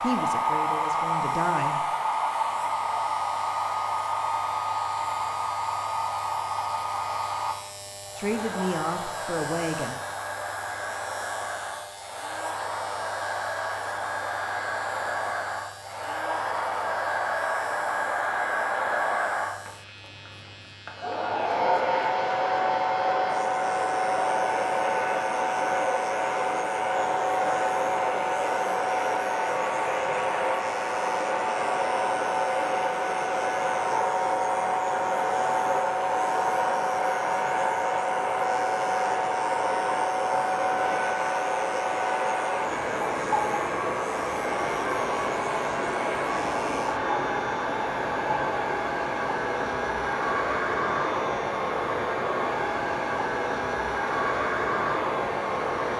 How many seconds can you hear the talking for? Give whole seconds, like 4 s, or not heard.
4 s.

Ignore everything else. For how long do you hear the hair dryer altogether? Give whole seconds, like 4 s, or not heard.
56 s.